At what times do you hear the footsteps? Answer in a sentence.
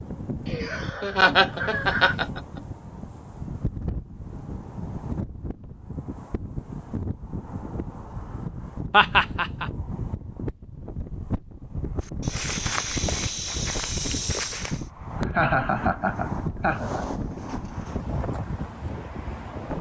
The footsteps can be heard from 12.0 to 14.8 s.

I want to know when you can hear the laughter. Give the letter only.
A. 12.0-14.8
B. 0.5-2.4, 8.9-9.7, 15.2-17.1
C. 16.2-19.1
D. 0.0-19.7
B.